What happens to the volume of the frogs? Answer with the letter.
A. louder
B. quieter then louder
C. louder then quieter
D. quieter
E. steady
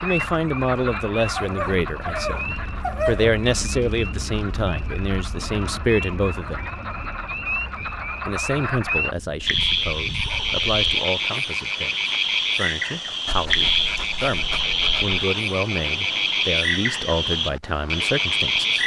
A.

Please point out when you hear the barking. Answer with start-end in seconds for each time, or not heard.
1.4-3.4, 9.4-10.8, 13.2-15.2.